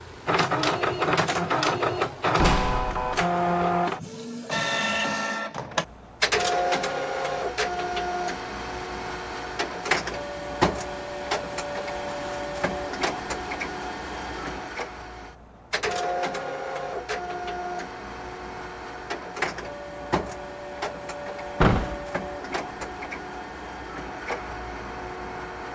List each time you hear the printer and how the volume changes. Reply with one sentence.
You can hear the printer from 0.0 to 25.7 s, getting quieter.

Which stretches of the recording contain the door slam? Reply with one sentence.
The door slam can be heard from 2.4 to 3.2 s and from 21.6 to 22.1 s.